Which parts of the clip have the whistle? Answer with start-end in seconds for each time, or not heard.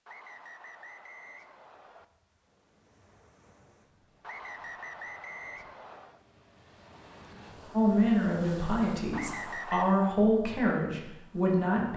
0.1-2.0, 4.2-6.2, 9.1-10.0.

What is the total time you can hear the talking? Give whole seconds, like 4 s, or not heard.
4 s.